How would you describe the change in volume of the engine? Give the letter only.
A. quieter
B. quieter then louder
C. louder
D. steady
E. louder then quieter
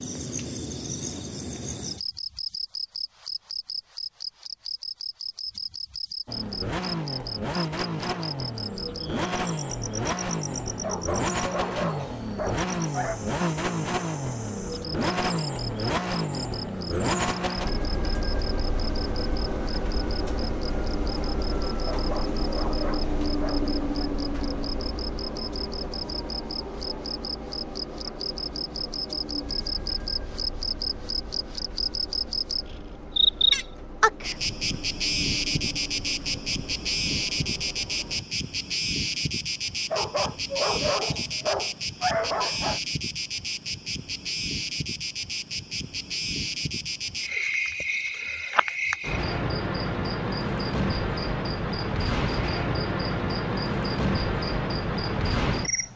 A.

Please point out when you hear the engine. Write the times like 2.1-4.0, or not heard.
6.2-38.2.